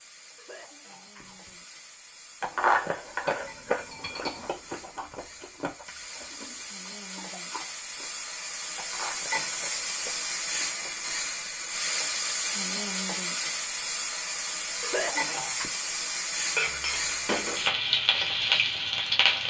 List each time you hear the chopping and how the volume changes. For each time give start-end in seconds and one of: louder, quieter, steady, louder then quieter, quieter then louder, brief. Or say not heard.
not heard.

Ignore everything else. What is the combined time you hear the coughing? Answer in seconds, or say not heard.
2 s.